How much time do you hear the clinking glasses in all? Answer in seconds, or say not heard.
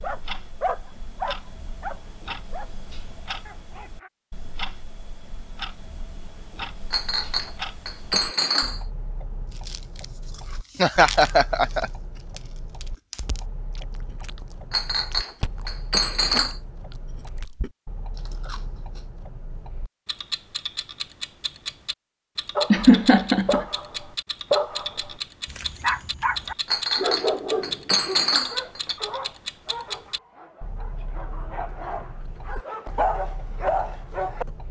6 s.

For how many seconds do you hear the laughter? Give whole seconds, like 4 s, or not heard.
2 s.